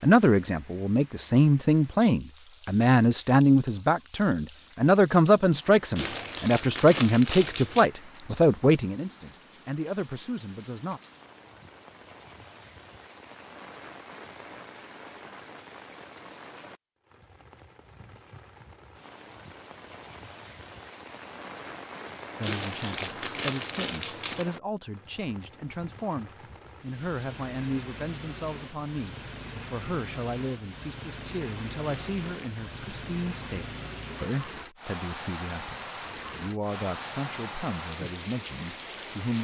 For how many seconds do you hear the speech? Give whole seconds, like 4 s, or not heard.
28 s.